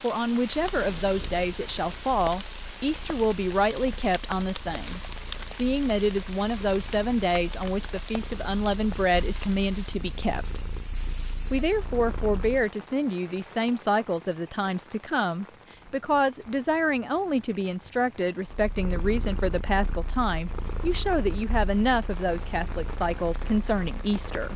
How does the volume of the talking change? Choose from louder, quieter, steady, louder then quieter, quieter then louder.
steady.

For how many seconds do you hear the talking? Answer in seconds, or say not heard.
24 s.